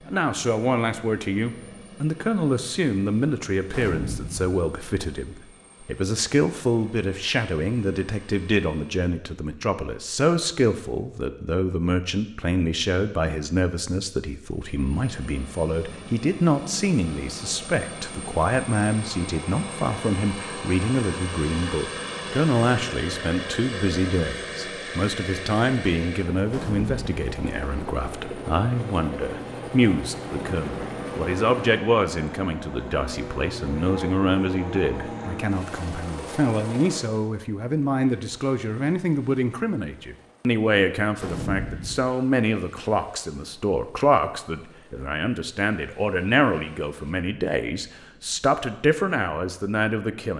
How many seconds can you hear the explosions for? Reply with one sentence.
The explosions can be heard for 2 seconds in total.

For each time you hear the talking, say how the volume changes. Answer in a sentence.
You can hear the talking from 0.1 to 50.3 s, at a steady volume.